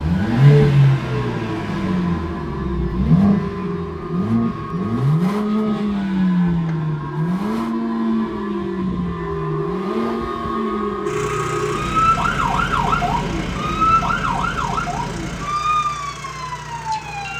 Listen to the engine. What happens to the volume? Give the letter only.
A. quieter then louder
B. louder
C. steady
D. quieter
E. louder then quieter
D.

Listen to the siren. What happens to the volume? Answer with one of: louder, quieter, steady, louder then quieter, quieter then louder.
louder.